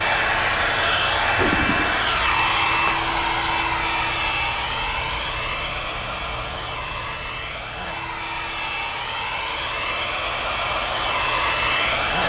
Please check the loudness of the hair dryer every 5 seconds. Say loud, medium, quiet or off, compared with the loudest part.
loud, medium, loud.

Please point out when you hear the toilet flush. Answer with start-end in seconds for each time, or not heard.
1.4-2.0.